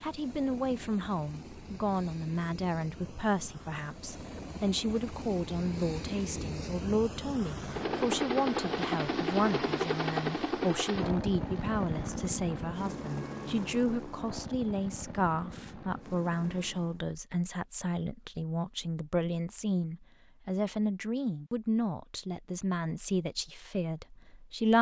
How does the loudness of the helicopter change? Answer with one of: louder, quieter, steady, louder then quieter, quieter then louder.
louder then quieter.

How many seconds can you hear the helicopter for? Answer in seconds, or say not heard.
17 s.